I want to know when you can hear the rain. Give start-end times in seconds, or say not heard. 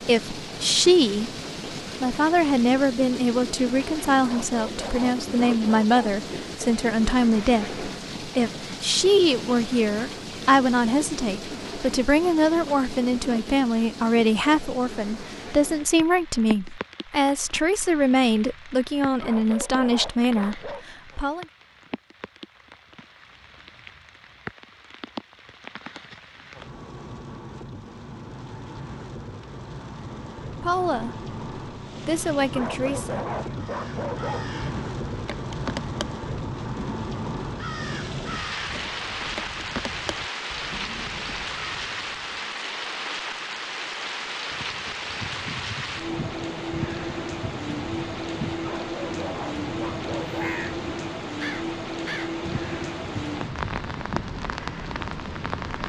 0.0-55.8.